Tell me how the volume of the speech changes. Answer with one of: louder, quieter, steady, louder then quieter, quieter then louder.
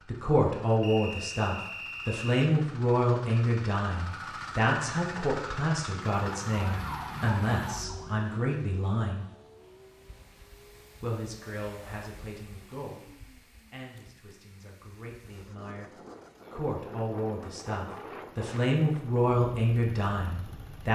quieter then louder.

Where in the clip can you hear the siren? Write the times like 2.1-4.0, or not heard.
6.2-8.2.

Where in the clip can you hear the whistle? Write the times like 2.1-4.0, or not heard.
0.8-2.3.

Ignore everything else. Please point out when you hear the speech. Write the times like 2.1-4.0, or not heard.
0.1-9.2, 11.0-20.9.